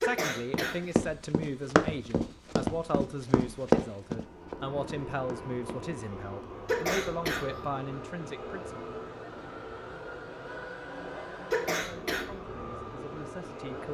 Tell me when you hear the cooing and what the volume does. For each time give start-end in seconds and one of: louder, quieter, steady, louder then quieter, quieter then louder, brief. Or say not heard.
not heard.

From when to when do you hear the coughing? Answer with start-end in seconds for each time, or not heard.
0.0-0.8, 6.7-7.5, 11.5-12.3.